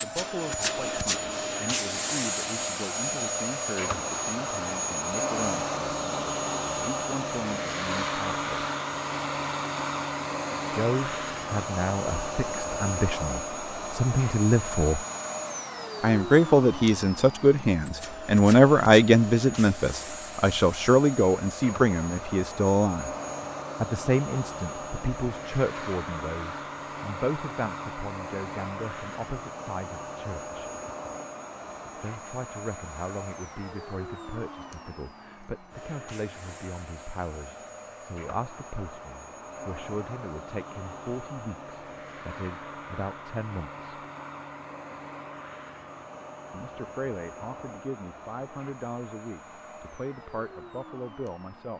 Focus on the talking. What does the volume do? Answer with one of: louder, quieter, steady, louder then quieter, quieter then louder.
louder then quieter.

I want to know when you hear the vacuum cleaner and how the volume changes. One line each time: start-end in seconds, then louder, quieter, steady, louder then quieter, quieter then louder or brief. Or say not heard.
0.0-51.7 quieter.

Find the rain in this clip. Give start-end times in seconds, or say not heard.
not heard.